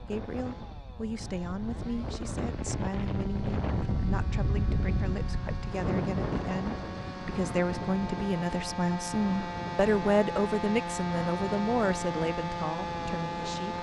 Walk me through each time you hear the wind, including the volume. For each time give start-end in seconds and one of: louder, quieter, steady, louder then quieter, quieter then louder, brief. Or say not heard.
0.0-13.7 louder then quieter.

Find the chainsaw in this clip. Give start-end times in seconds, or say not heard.
0.0-13.7.